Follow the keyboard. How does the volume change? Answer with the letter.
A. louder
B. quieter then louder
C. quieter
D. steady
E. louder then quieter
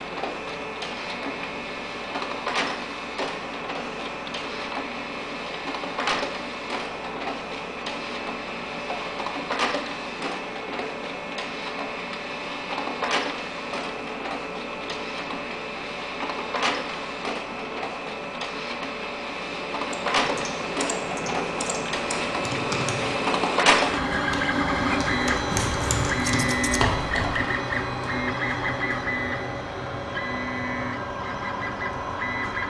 A.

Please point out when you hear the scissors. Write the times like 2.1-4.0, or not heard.
25.5-26.8.